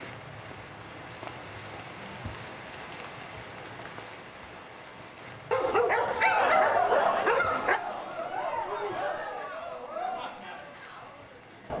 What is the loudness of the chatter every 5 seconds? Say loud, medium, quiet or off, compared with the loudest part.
off, loud, medium.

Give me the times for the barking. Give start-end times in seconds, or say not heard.
5.5-7.8.